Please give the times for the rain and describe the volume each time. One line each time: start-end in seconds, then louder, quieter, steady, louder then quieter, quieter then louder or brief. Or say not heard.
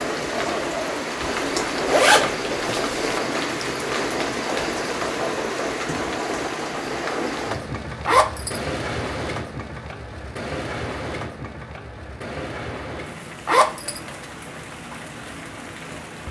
0.0-16.2 quieter.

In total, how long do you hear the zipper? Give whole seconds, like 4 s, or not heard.
3 s.